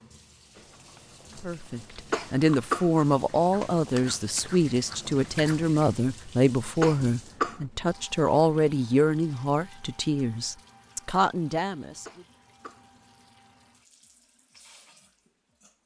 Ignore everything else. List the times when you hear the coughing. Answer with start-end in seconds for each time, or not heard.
2.1-2.9, 6.8-7.6, 12.1-12.8.